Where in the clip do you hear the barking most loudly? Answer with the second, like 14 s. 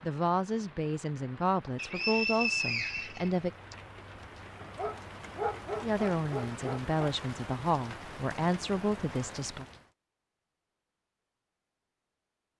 6 s.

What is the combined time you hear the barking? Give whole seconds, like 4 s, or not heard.
2 s.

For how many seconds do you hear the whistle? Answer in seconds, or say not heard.
2 s.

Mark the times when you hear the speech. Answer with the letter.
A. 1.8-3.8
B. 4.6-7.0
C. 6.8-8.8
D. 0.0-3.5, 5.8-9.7
D.